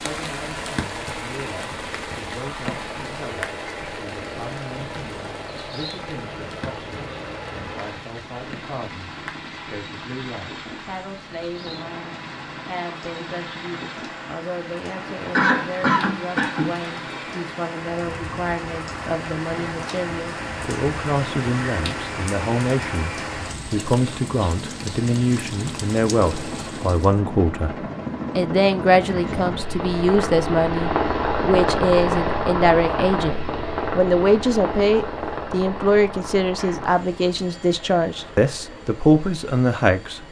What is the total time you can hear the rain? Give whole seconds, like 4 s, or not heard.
27 s.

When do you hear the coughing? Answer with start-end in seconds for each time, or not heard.
15.3-16.8, 36.5-36.9.